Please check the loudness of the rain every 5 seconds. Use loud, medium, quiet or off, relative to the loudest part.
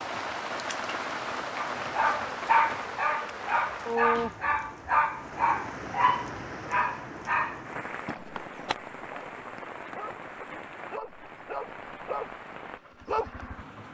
loud, medium, medium.